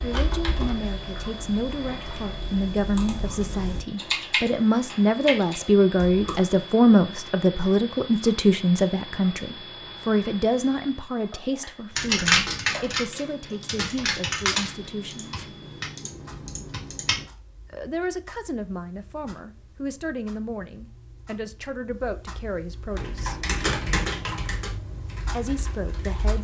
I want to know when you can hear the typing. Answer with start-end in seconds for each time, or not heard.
0.0-6.5, 11.9-17.2, 22.9-26.3.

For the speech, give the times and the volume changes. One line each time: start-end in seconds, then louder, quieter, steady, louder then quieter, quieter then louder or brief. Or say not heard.
0.0-15.4 louder then quieter
17.7-23.4 steady
25.3-26.3 brief.